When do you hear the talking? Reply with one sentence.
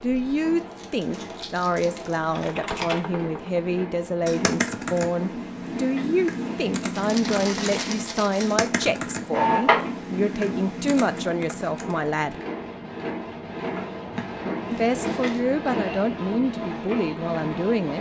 The talking can be heard from 0.0 to 12.3 s and from 14.7 to 17.9 s.